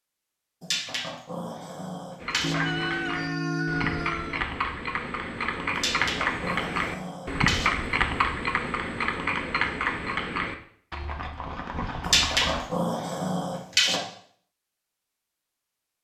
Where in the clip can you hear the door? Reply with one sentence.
The door can't be heard in this clip.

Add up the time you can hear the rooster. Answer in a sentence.
You can hear the rooster for 2 seconds altogether.